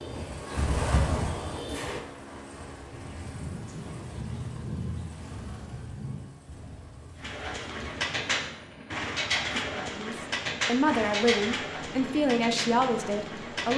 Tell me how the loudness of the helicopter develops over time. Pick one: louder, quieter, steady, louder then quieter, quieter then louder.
quieter then louder.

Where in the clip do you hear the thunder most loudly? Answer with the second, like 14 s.
5 s.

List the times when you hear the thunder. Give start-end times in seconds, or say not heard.
2.9-6.3.